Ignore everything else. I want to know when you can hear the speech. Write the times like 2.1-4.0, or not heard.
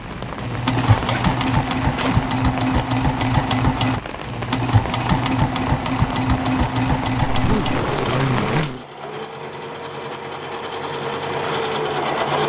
not heard.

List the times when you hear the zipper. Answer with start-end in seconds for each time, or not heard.
0.7-2.2, 7.2-8.8.